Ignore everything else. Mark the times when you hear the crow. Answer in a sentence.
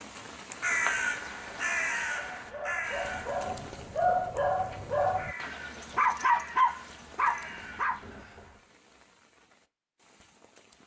The crow can be heard from 0.6 to 8.6 s.